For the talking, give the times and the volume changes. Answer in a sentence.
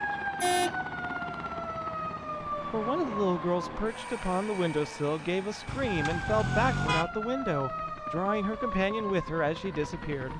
You can hear the talking from 2.5 to 10.3 s, at a steady volume.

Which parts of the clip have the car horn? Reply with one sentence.
You can hear the car horn from 0.3 to 0.8 s and from 5.7 to 7.1 s.